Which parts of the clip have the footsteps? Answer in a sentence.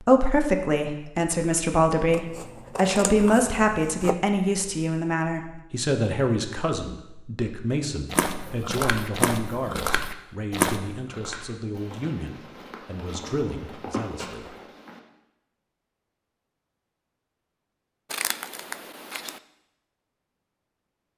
You can hear the footsteps from 8.1 to 15.0 s.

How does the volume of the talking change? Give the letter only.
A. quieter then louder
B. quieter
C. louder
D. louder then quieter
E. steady
B.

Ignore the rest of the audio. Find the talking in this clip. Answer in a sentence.
The talking can be heard from 0.0 to 14.6 s.